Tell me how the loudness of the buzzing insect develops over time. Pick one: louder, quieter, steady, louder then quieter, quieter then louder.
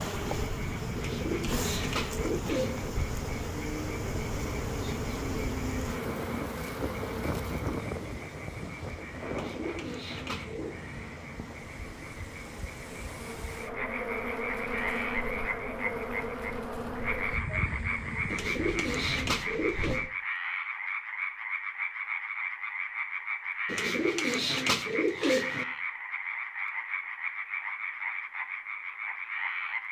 quieter then louder.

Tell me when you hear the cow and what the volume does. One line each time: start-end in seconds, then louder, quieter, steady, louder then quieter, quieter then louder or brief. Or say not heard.
not heard.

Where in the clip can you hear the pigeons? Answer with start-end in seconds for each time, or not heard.
0.9-2.9, 9.3-10.8, 18.3-20.0, 23.6-25.6.